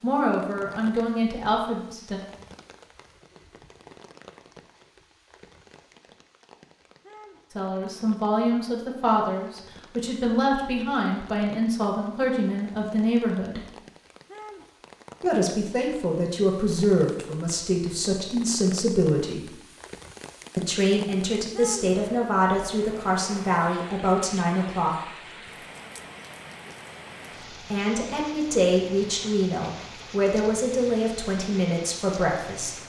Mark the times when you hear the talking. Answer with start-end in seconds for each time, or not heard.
0.0-2.2, 7.5-13.6, 15.2-19.5, 20.6-25.0, 27.5-32.8.